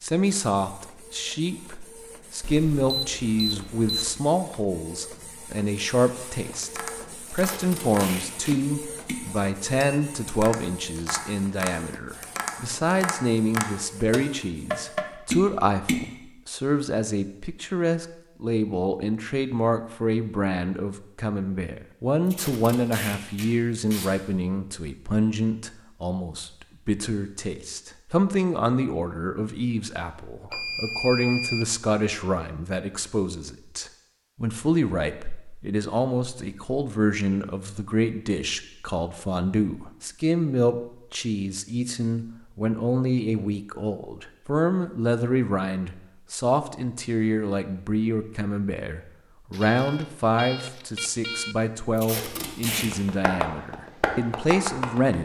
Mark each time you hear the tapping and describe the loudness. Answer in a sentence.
The tapping can be heard from 6.6 to 16.1 s, getting louder; and briefly from 52.9 to 55.2 s.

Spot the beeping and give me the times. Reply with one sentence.
You can hear the beeping from 2.4 to 4.2 s, from 30.5 to 31.8 s and from 49.5 to 51.5 s.